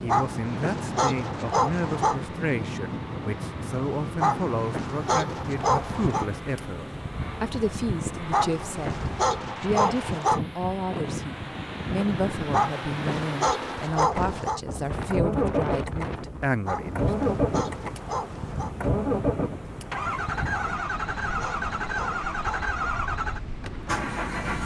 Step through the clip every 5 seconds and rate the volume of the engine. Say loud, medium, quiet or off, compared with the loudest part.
quiet, quiet, medium, loud, loud.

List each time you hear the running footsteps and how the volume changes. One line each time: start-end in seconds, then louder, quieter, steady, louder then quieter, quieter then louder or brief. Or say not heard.
not heard.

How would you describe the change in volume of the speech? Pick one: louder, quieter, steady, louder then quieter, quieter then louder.
steady.